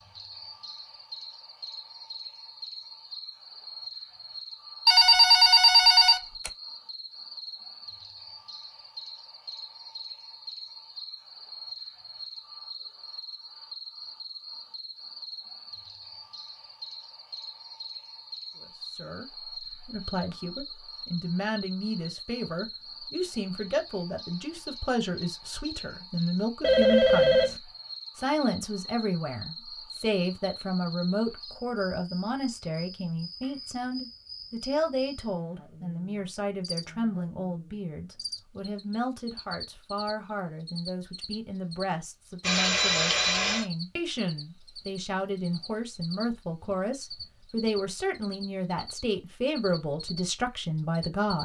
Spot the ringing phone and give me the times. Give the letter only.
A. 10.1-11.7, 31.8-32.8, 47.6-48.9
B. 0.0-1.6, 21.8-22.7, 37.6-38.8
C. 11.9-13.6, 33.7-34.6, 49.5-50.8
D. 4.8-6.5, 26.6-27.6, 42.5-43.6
D.